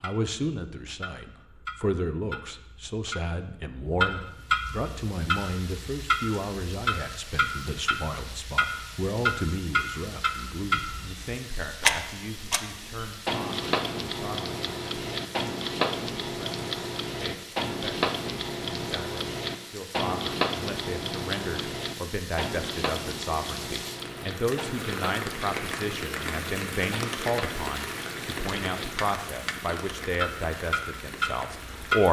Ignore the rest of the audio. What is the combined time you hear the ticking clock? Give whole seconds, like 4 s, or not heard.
32 s.